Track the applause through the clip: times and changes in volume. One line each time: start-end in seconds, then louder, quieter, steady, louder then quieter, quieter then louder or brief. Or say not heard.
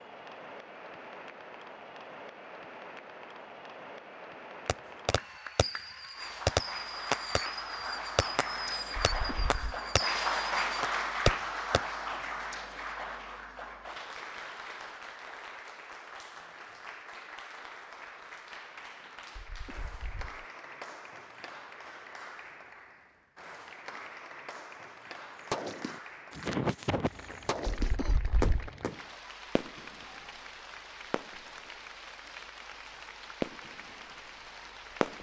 0.0-35.1 louder then quieter.